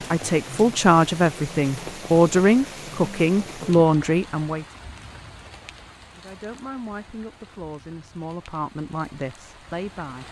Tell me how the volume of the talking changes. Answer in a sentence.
The volume of the talking goes down.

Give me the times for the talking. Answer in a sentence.
You can hear the talking from 0.1 to 4.7 s and from 6.2 to 10.2 s.